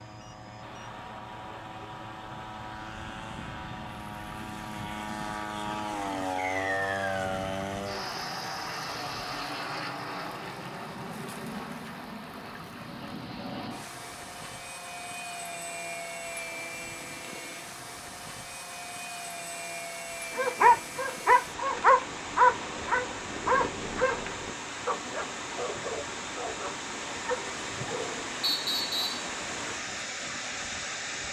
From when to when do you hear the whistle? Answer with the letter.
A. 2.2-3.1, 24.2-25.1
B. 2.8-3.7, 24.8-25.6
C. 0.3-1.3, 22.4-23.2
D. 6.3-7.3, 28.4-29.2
D.